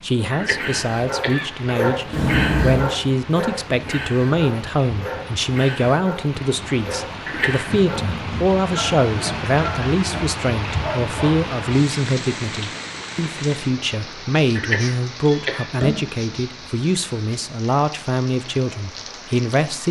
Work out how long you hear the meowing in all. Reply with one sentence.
The meowing can be heard for 2 seconds in total.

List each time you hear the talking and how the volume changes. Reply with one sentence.
You can hear the talking from 0.0 to 19.8 s, at a steady volume.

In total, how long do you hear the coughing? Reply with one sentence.
The coughing can be heard for 3 seconds in total.